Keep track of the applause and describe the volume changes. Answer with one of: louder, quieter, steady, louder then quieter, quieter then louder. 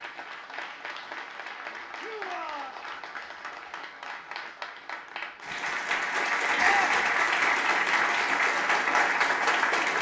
louder.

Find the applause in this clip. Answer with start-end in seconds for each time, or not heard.
0.0-9.9.